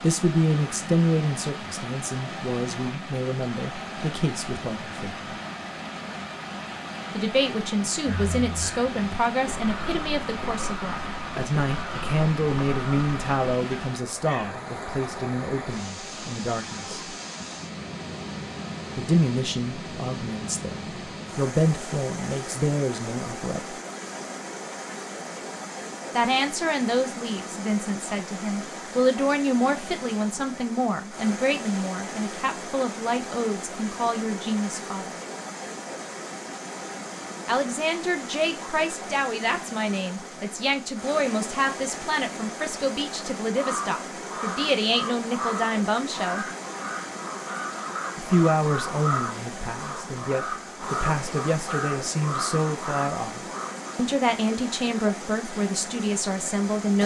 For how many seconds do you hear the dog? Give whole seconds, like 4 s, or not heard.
not heard.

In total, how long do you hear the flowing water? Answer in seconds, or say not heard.
57 s.